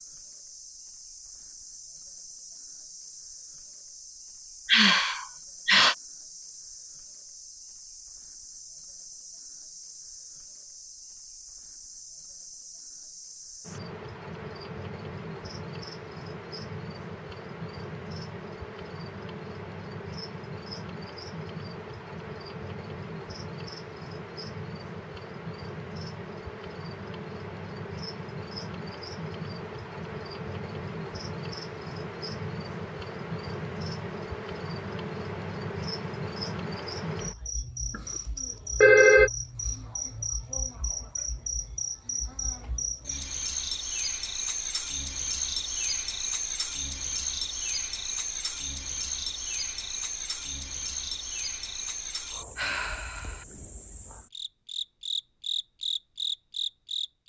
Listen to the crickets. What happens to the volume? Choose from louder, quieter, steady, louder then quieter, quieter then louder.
louder.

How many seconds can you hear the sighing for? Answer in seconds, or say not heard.
2 s.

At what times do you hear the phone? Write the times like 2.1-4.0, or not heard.
37.9-39.3.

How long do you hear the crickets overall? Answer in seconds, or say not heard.
57 s.